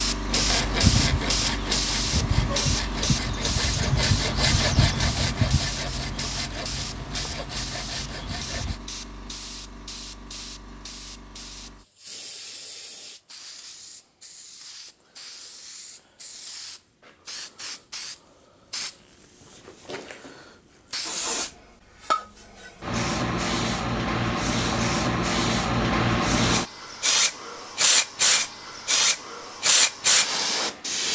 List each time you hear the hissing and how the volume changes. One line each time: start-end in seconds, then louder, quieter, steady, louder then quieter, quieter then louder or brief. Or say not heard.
0.0-31.0 quieter then louder.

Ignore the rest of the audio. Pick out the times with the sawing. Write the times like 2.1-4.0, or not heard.
0.3-8.8.